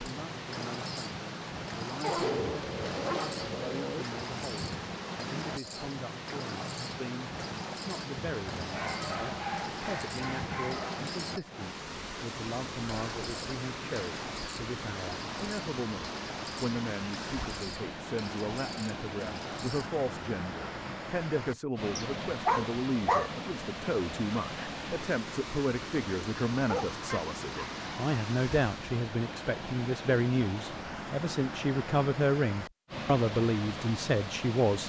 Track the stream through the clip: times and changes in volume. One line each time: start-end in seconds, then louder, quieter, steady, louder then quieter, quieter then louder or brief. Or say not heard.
0.0-34.8 steady.